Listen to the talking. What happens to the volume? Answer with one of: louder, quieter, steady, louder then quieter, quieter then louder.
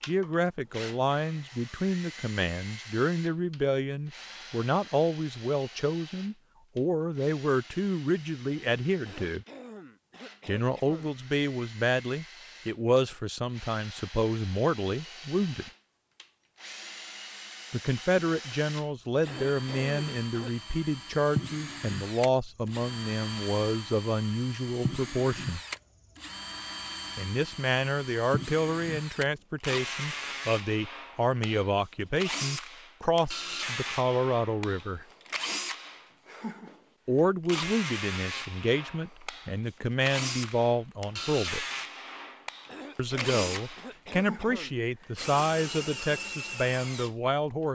steady.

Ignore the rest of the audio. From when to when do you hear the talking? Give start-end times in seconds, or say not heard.
0.0-9.4, 10.4-15.7, 17.7-25.6, 27.1-35.0, 37.0-41.6, 43.0-47.7.